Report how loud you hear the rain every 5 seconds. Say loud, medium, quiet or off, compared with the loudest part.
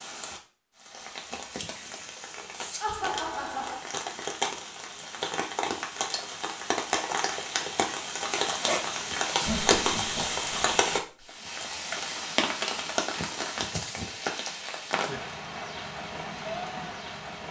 medium, loud, loud, medium.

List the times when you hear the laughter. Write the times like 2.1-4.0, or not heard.
2.8-3.8, 9.4-11.2.